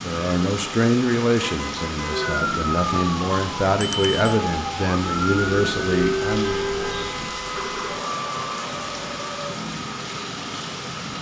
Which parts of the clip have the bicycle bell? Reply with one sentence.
The bicycle bell can be heard from 3.8 to 4.3 s.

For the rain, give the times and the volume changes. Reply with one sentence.
The rain can be heard from 0.0 to 11.1 s, at a steady volume.